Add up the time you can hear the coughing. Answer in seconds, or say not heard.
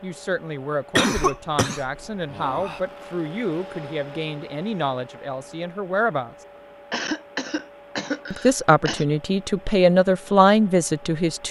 4 s.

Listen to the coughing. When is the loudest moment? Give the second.
1 s.